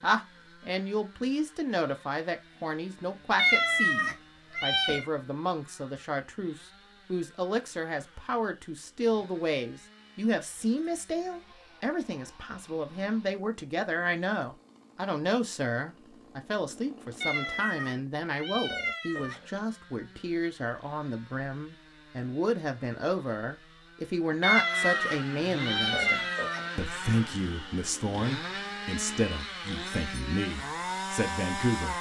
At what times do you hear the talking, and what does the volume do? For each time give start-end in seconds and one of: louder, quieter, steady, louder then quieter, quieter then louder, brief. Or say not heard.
0.0-31.9 steady.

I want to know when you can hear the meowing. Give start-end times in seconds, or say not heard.
3.4-5.0, 17.2-19.6, 24.4-26.6.